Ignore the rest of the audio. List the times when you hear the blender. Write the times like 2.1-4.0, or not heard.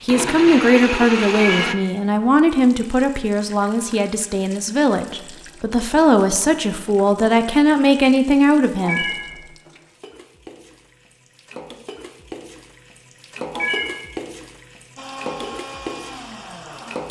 0.0-1.8, 14.9-17.0.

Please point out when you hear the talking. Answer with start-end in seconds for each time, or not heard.
0.0-9.1.